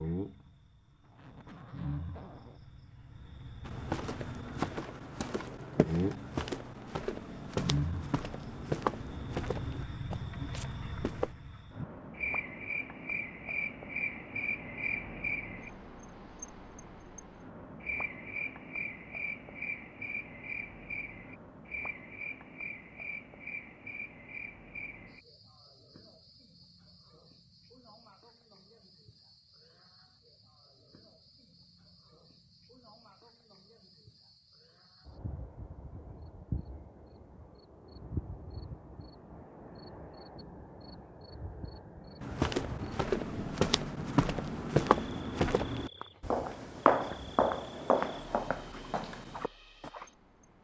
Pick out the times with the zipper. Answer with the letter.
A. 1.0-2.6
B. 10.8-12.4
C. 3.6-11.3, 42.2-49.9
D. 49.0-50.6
A.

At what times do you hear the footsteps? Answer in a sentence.
You can hear the footsteps from 3.6 to 11.3 s and from 42.2 to 49.9 s.